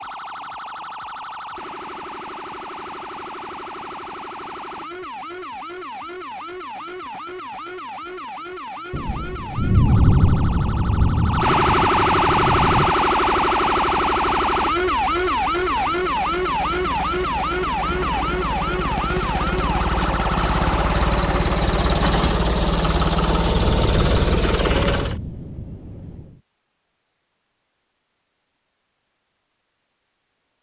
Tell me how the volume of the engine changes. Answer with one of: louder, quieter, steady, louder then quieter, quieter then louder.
louder.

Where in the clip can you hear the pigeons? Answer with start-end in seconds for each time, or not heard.
not heard.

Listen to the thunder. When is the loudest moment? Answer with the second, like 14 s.
10 s.